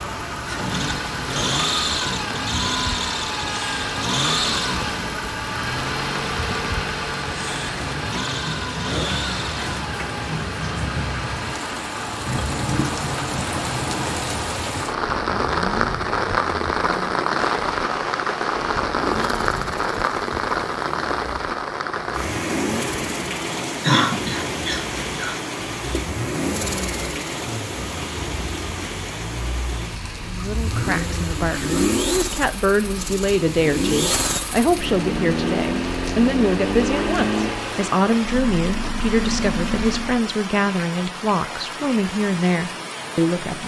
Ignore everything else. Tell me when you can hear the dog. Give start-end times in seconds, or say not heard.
not heard.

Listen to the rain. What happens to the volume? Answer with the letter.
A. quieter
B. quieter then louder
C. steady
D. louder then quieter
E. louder
D.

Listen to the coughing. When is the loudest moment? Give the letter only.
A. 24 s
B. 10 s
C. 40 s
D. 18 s
A.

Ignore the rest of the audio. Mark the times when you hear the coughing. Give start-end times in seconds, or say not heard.
23.8-25.4.